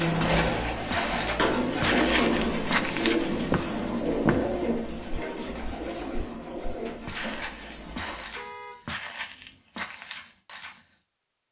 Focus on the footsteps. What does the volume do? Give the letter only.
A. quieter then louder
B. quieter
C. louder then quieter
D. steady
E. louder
B.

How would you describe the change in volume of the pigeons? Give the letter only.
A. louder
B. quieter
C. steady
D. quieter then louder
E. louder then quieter
B.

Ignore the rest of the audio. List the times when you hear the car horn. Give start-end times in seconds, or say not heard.
8.3-9.6.